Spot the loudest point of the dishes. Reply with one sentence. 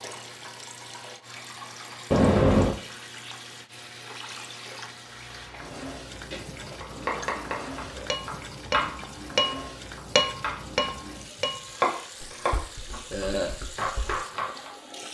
The volume of the dishes peaks at 10 seconds.